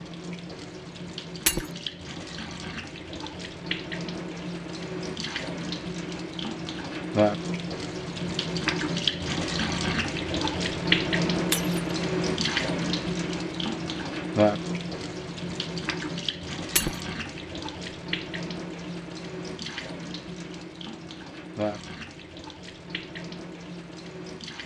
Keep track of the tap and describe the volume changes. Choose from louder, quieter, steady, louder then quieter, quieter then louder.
louder then quieter.